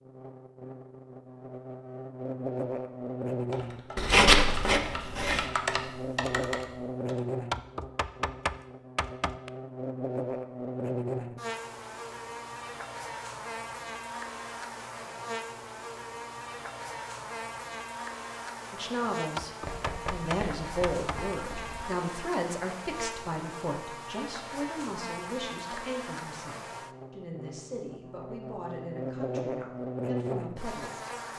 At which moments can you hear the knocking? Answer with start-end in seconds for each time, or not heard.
7.5-9.5, 19.4-21.4.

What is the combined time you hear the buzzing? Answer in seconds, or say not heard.
31 s.